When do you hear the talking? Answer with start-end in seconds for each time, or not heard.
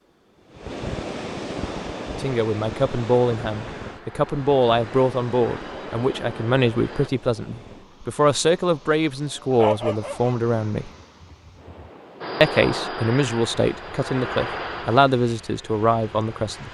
2.1-10.9, 12.4-16.6.